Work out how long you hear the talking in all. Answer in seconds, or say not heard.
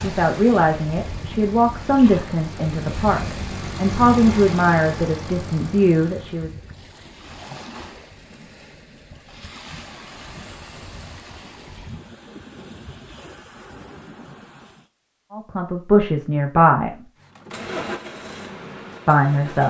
9 s.